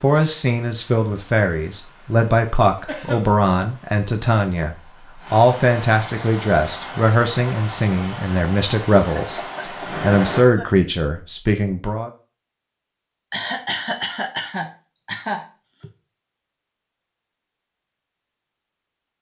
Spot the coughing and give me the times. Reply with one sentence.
The coughing can be heard from 2.9 to 3.4 s, from 9.2 to 10.8 s and from 13.3 to 15.9 s.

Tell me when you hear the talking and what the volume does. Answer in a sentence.
You can hear the talking from 0.0 to 12.1 s, at a steady volume.